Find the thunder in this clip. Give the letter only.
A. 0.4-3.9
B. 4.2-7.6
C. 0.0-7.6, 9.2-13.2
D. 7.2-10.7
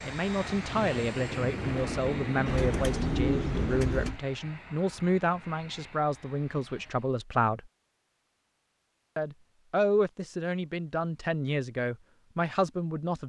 A.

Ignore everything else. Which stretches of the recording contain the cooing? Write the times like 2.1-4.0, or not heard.
2.5-4.2.